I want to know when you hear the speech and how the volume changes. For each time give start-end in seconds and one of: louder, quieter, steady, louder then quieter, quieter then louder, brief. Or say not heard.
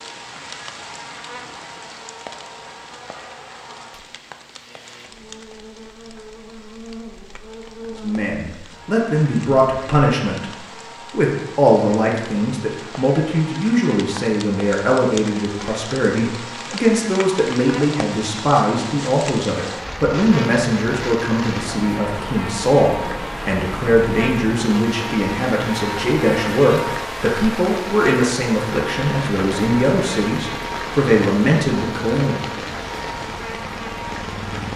7.9-32.6 steady.